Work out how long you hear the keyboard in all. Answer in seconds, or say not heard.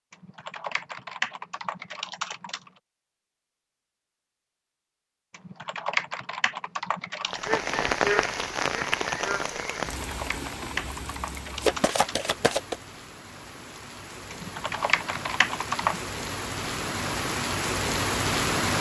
9 s.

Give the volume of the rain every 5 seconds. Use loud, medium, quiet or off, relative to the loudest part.
off, loud, quiet, loud.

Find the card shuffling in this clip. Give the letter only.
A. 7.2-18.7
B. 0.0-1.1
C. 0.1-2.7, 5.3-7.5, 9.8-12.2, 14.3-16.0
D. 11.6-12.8
D.